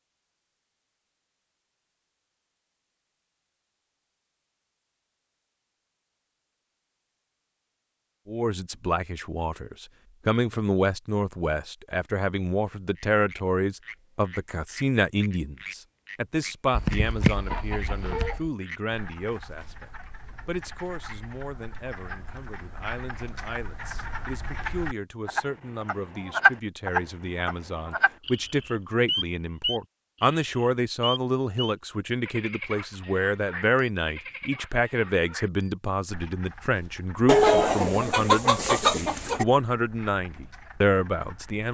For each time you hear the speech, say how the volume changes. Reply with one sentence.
The speech can be heard from 8.2 to 41.6 s, getting quieter then louder.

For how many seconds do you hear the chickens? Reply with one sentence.
You can hear the chickens for 4 seconds altogether.